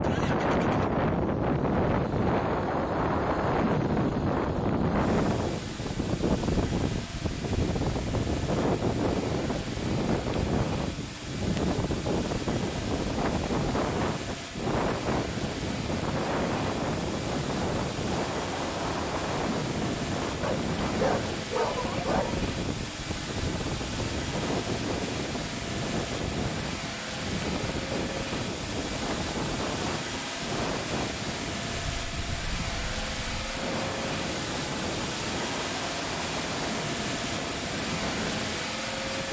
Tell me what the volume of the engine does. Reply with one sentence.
The loudness of the engine goes up.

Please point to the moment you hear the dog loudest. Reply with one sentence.
The loudest moment of the dog is at 22 seconds.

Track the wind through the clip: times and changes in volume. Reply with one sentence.
You can hear the wind from 0.0 to 39.2 s, getting quieter.